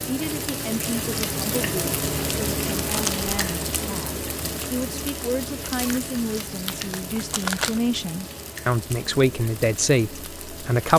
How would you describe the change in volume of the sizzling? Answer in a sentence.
The loudness of the sizzling goes down.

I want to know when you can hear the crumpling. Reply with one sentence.
The crumpling can be heard from 2.9 to 3.5 s and from 5.8 to 7.8 s.